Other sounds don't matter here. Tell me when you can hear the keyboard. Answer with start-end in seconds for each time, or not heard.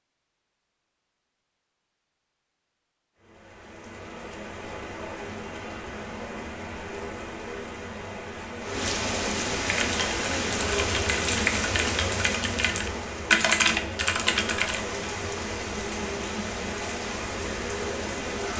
9.6-14.8.